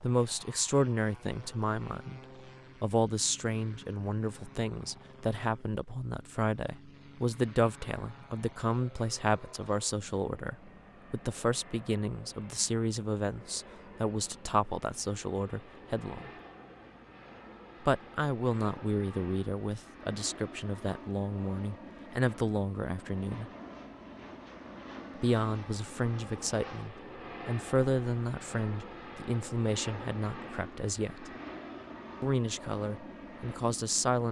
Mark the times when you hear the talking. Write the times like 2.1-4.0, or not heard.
0.0-2.2, 2.8-16.3, 17.9-23.4, 25.2-31.3, 32.2-34.2.